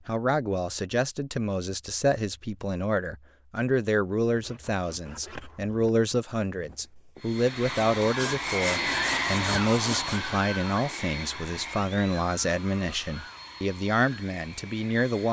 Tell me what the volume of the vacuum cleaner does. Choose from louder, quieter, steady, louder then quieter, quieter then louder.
quieter.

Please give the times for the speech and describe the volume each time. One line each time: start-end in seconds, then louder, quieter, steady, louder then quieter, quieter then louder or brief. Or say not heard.
0.1-15.2 steady.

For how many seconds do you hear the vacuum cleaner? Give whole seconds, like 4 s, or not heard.
8 s.